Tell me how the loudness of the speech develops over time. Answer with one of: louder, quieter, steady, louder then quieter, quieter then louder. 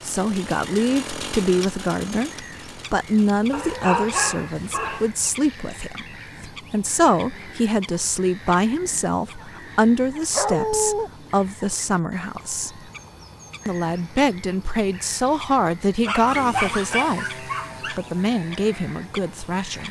steady.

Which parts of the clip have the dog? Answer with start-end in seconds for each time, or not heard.
3.5-5.1, 10.3-11.1, 16.1-18.0.